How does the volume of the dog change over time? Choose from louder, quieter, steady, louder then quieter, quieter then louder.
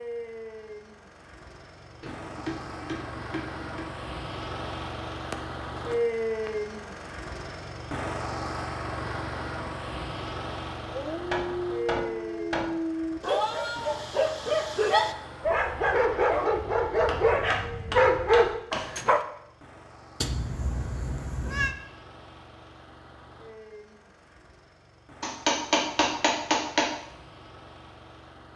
louder.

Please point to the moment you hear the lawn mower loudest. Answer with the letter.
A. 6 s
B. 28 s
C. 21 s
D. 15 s
A.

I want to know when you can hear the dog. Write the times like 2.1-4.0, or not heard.
10.8-19.2.